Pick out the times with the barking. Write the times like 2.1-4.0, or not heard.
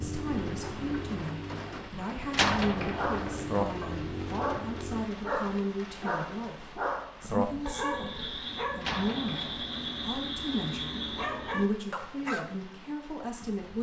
2.9-12.6.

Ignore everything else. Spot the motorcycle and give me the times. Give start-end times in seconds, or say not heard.
0.0-5.1.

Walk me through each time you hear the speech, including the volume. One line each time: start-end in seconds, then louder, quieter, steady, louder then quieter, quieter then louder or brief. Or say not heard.
0.0-13.7 steady.